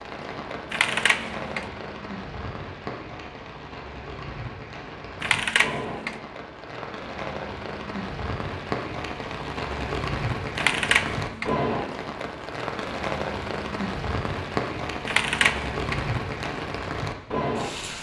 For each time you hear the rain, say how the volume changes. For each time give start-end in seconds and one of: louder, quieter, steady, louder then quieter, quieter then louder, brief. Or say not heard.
0.0-17.9 louder.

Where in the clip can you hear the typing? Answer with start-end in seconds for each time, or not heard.
0.7-1.7, 5.2-6.2, 10.6-11.6, 15.1-16.1.